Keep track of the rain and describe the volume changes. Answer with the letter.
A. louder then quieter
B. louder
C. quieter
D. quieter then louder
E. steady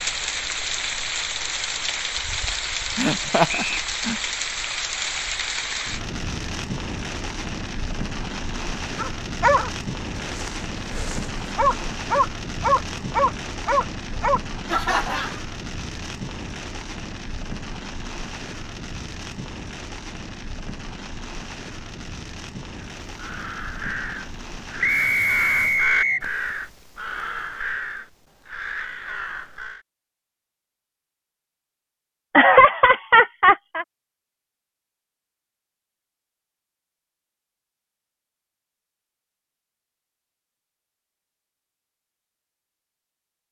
C.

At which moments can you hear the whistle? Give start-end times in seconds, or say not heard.
3.5-3.9, 24.8-26.2.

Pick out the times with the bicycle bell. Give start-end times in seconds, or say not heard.
not heard.